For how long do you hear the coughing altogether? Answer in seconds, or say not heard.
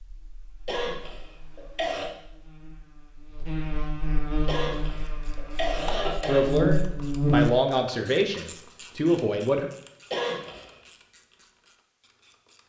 4 s.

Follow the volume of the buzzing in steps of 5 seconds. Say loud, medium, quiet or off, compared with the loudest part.
medium, loud, off.